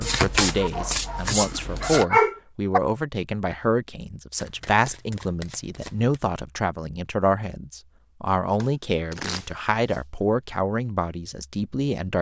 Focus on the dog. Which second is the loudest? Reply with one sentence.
The loudest moment of the dog is at 2 seconds.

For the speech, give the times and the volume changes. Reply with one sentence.
The speech can be heard from 0.0 to 12.1 s, at a steady volume.